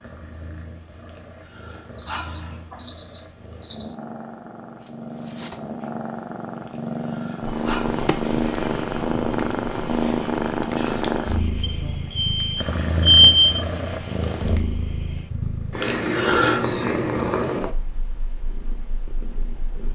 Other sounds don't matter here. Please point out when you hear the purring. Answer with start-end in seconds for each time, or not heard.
0.0-19.8.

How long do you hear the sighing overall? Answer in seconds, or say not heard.
4 s.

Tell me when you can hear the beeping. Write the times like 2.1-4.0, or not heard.
1.9-4.0, 11.6-13.6.